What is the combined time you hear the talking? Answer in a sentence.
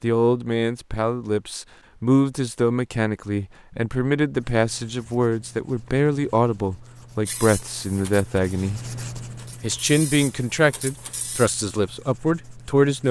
You can hear the talking for 12 seconds altogether.